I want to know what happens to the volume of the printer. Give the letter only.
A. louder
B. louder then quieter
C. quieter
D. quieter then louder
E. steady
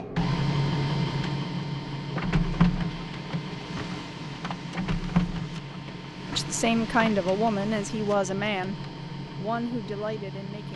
C.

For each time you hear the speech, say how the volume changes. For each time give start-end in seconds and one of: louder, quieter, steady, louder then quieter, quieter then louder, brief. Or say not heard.
6.3-10.7 quieter.